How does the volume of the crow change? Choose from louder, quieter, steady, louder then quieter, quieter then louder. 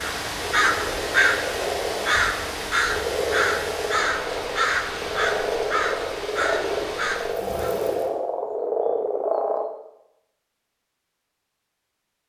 quieter.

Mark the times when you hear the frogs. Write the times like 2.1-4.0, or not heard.
0.0-9.7.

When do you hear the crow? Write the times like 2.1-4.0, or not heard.
0.0-7.8.